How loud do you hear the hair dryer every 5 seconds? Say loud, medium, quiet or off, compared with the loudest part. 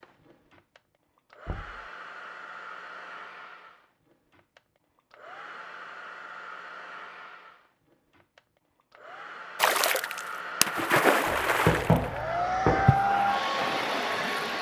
quiet, quiet, loud.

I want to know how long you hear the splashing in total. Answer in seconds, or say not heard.
5 s.